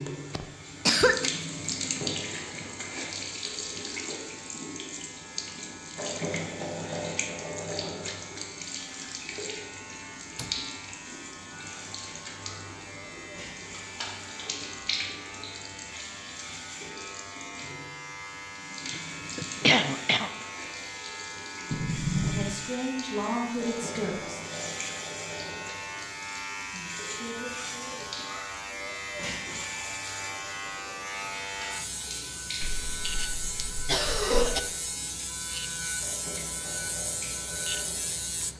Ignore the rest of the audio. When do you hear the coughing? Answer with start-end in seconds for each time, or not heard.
0.3-1.3, 18.9-20.3, 32.6-34.6.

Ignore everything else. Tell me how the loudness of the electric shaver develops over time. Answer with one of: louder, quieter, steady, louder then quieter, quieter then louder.
louder.